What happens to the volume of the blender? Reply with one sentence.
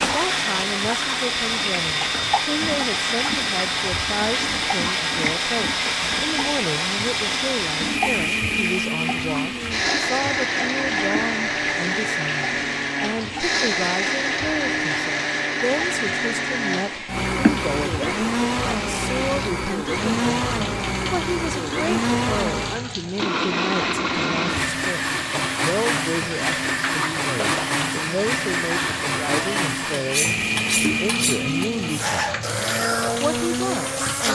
The volume of the blender stays about the same.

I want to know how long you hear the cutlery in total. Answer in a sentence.
You can hear the cutlery for 2 seconds altogether.